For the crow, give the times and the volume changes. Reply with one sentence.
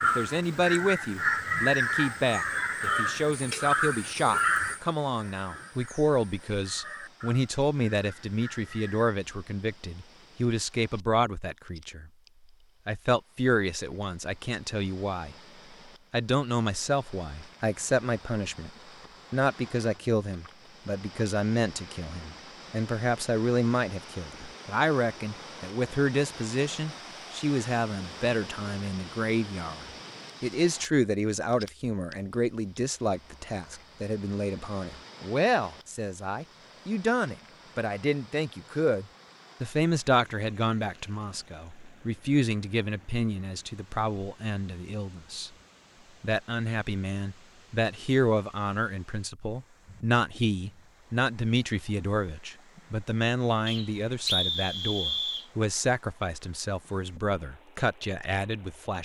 You can hear the crow from 0.0 to 9.2 s, getting quieter.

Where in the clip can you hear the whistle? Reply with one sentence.
You can hear the whistle from 53.6 to 55.5 s.